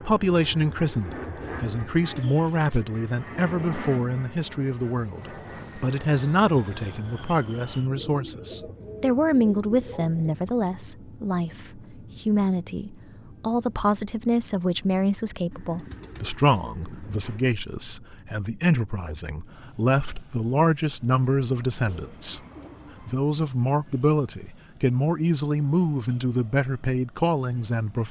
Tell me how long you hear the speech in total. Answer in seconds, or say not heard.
27 s.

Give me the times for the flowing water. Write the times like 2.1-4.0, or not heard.
not heard.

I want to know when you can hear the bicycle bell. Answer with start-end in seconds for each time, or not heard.
not heard.